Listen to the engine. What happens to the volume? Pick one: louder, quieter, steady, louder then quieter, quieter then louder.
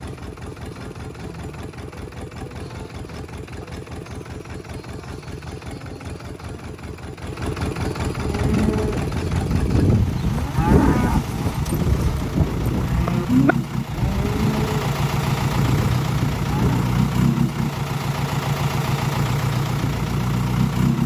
louder.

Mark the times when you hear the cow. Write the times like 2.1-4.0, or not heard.
8.1-16.9.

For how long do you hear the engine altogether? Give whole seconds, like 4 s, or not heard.
21 s.